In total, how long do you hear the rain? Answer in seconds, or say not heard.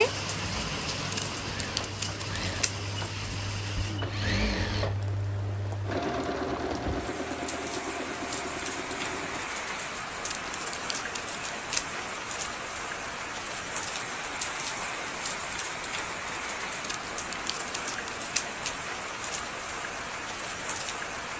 21 s.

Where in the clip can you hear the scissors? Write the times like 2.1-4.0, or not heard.
1.1-2.9, 10.2-12.0, 16.8-18.6.